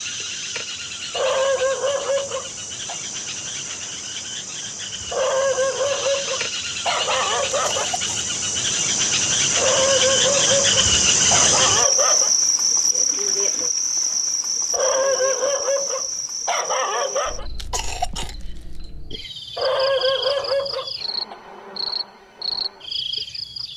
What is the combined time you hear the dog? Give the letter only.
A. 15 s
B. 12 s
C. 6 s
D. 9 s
B.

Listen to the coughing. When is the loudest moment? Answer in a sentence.
The volume of the coughing peaks at 18 seconds.